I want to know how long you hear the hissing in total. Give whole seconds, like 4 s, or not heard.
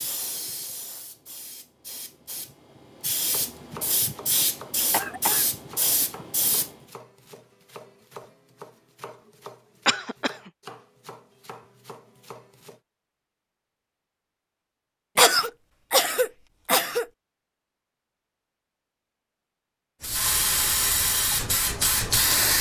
9 s.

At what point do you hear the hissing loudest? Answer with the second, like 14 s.
22 s.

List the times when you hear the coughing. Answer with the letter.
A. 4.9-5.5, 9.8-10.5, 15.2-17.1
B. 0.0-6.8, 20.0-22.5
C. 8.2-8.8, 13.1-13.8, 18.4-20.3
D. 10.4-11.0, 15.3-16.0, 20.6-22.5
A.